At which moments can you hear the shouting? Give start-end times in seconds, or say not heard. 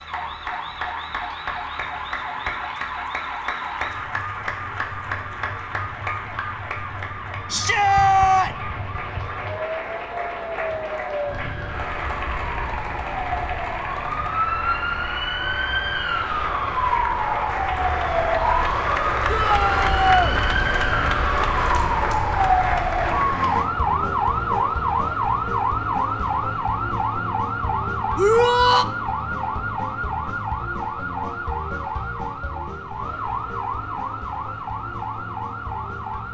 7.5-8.6, 19.3-20.4, 28.1-28.9.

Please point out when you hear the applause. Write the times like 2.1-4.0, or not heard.
0.0-23.6.